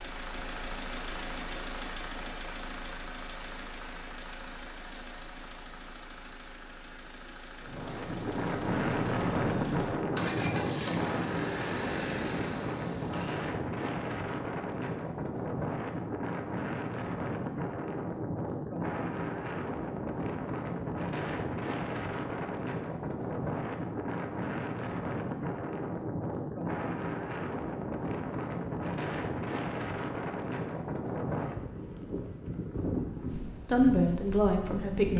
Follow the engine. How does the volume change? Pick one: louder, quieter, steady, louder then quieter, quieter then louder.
quieter then louder.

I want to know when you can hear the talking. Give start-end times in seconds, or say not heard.
33.6-35.1.